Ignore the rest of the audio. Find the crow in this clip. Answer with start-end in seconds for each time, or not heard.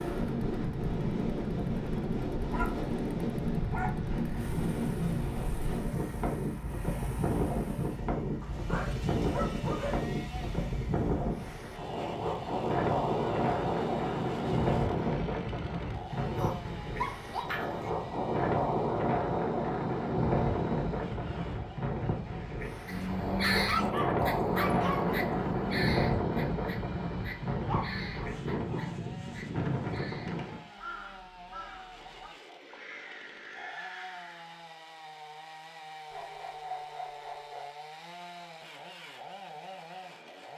22.9-34.6.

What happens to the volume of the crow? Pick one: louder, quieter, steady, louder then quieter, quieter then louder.
quieter.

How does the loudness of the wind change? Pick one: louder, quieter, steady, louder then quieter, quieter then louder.
steady.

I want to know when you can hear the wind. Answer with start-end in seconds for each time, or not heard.
0.0-30.6.